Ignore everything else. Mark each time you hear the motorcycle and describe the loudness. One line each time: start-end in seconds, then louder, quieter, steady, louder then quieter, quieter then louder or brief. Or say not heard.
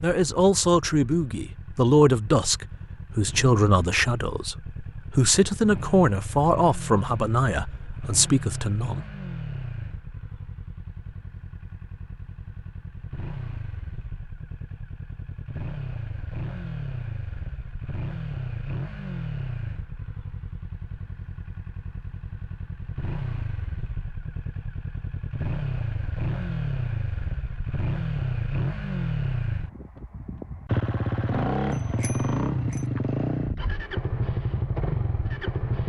0.2-35.8 louder.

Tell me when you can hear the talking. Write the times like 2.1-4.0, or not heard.
0.0-9.1.